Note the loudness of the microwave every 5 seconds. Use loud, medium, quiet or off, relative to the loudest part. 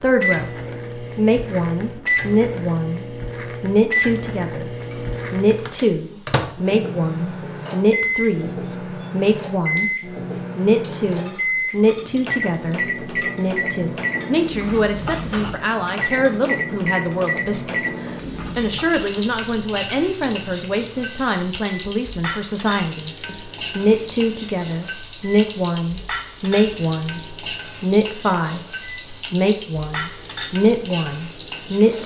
loud, loud, loud, loud, quiet, quiet, quiet.